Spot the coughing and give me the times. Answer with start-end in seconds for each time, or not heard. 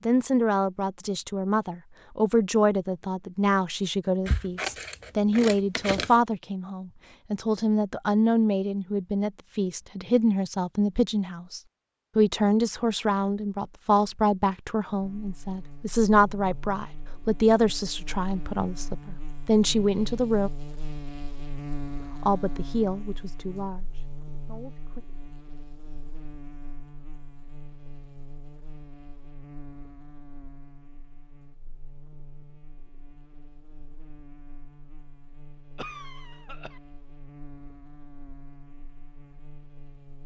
35.8-36.8.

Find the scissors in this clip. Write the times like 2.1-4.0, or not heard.
4.2-6.2.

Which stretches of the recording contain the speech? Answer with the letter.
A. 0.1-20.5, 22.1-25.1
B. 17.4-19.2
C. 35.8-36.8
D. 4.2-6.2
A.